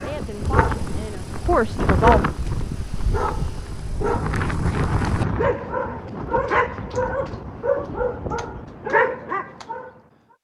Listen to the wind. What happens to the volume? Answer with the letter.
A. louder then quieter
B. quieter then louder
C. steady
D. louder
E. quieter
E.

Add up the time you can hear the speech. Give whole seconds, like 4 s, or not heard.
2 s.